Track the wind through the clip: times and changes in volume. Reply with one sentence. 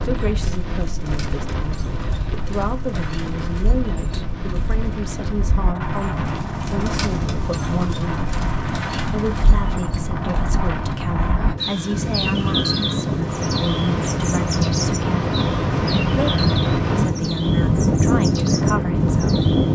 The wind can be heard from 0.0 to 19.7 s, getting louder.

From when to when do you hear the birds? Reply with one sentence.
The birds can be heard from 0.0 to 19.7 s.